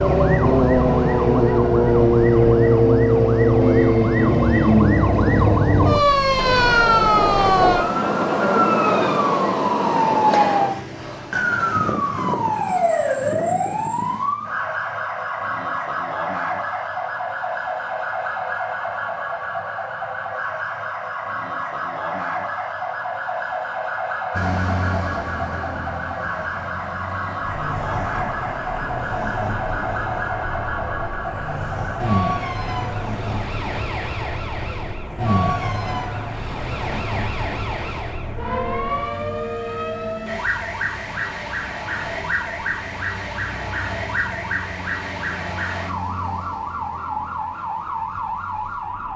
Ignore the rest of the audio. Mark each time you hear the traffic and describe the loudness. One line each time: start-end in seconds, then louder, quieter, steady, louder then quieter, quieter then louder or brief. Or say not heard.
24.3-49.1 quieter.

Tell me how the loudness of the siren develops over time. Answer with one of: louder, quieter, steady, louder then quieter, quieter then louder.
quieter.